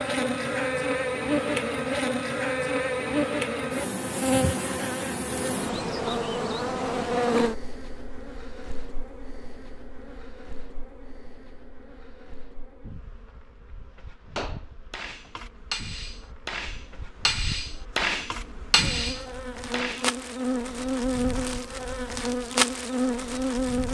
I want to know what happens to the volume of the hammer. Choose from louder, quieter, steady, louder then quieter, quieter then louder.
louder.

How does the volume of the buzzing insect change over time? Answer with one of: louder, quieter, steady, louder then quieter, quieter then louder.
quieter then louder.